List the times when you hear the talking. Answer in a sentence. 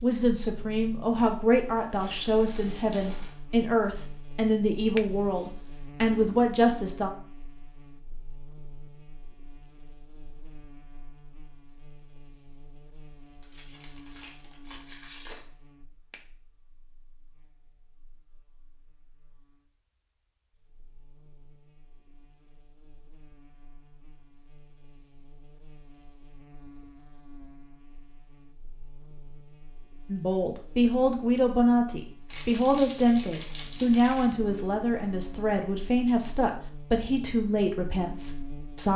The talking can be heard from 0.0 to 7.1 s and from 30.1 to 38.9 s.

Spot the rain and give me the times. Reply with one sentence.
The rain can't be heard in this clip.